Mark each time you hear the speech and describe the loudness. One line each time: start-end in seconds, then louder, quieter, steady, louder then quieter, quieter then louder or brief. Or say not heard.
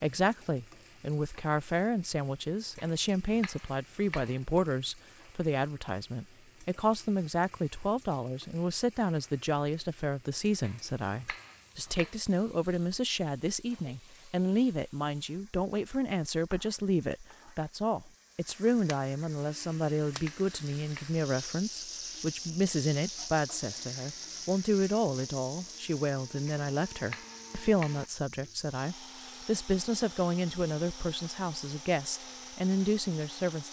0.0-33.6 steady.